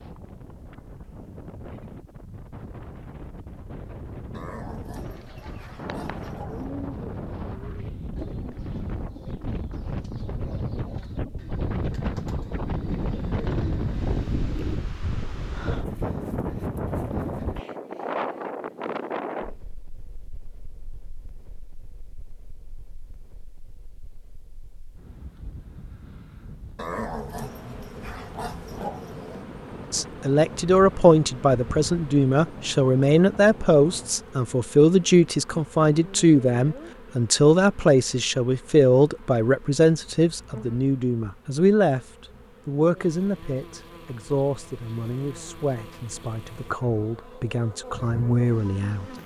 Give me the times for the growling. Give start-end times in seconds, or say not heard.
4.3-6.7, 26.8-29.4.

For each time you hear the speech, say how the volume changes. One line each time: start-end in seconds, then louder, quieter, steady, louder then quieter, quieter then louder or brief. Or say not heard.
29.9-49.1 quieter.